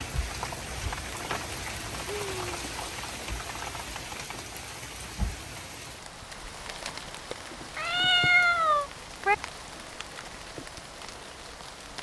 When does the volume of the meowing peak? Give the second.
8 s.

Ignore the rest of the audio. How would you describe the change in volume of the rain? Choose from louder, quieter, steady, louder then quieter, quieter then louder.
quieter.